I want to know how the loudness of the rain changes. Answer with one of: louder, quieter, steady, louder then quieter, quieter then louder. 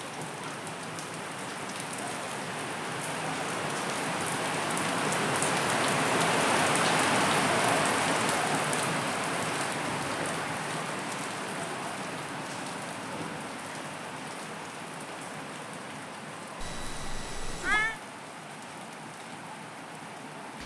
louder then quieter.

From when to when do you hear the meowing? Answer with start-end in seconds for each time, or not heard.
16.6-18.0.